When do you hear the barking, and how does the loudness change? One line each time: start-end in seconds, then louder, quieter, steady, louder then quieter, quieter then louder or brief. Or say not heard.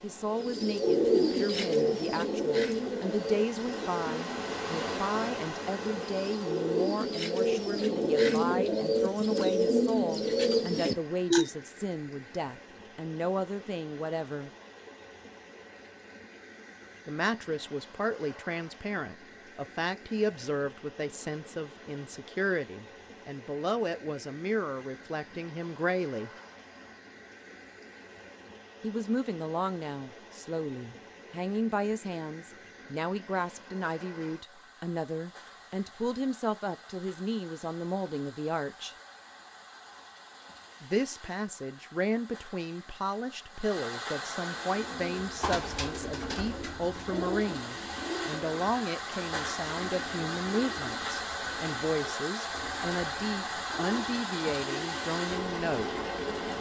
not heard.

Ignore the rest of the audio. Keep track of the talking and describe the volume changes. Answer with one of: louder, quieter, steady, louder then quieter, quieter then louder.
steady.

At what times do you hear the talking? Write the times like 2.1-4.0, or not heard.
0.0-14.5, 17.1-26.3, 28.8-39.0, 40.8-56.0.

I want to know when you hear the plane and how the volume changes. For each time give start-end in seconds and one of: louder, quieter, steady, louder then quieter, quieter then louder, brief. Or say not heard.
not heard.